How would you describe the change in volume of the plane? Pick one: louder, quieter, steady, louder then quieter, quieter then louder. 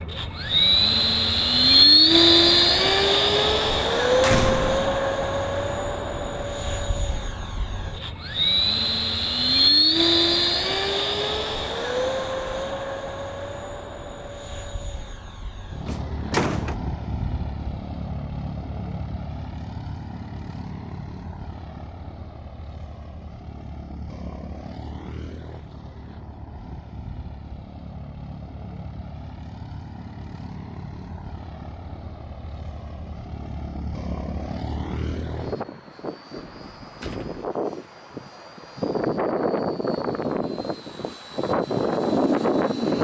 quieter then louder.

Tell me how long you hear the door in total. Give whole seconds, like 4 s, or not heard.
3 s.